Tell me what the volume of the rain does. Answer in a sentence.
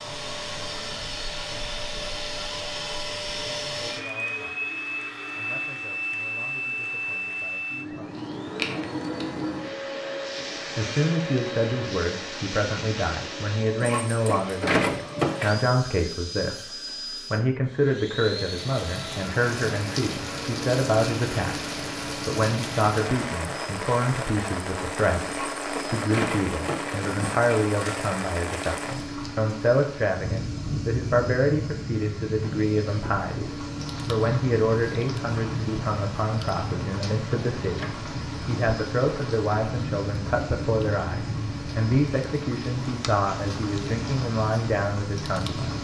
The volume of the rain stays about the same.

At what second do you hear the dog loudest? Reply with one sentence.
The loudest moment of the dog is at 15 seconds.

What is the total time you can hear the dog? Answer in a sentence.
The dog can be heard for 4 seconds in total.